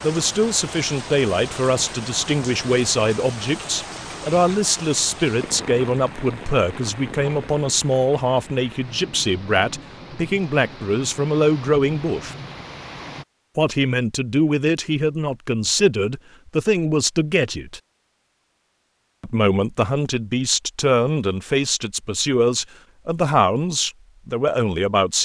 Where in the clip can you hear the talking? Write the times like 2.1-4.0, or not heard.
0.0-12.3, 13.6-17.8, 19.2-25.2.